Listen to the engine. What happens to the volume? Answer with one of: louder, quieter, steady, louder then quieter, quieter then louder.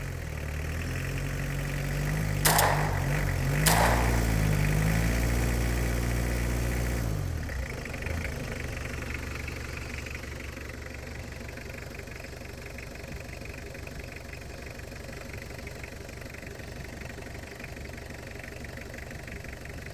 quieter.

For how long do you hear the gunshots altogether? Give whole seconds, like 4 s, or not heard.
2 s.